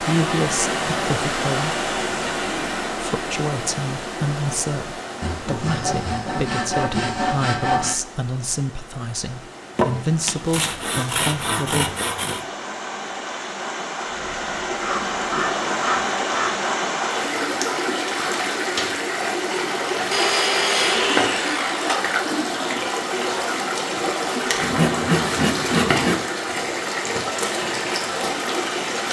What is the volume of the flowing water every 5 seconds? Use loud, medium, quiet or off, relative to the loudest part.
loud, quiet, medium, loud, loud, loud.